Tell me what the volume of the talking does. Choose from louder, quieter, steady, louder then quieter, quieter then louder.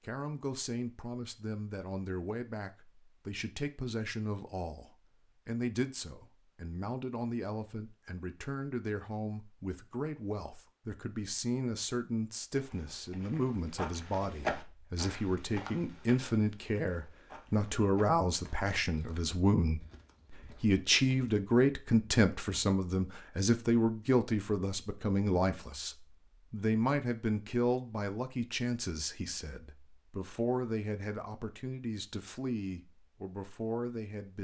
louder then quieter.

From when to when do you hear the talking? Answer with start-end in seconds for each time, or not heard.
0.0-34.3.